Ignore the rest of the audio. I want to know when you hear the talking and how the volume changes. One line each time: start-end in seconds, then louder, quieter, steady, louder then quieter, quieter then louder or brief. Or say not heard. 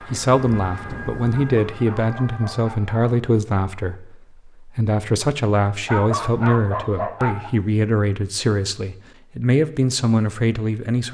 0.1-11.0 steady.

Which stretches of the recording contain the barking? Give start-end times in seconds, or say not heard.
1.3-3.0, 5.8-7.5.